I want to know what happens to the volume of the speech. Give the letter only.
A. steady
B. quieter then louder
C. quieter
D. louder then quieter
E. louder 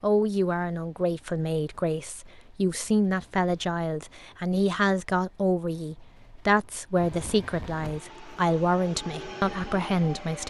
A.